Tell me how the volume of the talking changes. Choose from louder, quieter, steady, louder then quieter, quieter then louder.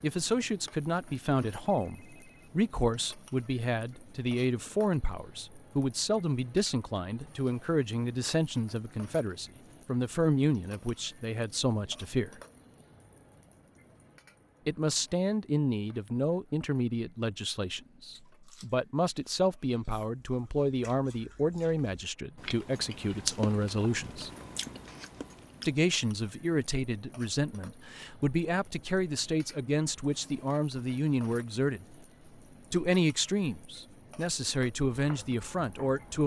steady.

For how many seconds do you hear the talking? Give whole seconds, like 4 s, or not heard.
32 s.